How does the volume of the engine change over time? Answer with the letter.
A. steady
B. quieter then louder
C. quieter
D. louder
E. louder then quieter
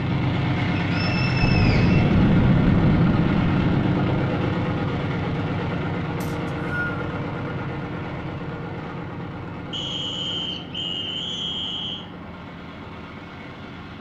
C.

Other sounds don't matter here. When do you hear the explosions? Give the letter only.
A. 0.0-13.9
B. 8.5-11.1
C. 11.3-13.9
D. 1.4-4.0
D.